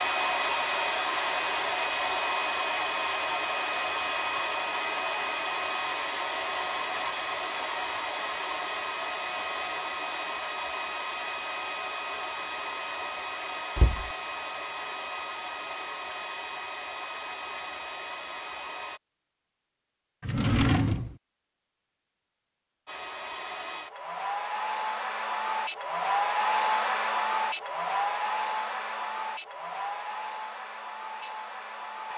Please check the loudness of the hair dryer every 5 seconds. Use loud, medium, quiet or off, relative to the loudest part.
loud, loud, medium, medium, medium, loud, medium.